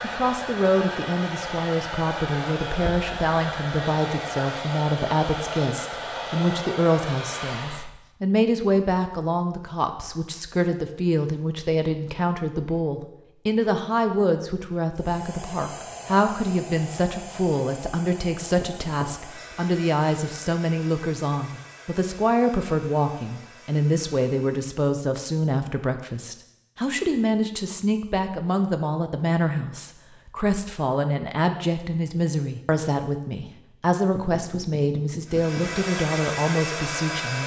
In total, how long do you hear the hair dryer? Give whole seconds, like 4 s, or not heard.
20 s.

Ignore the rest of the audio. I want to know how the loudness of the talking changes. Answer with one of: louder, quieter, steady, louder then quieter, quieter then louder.
steady.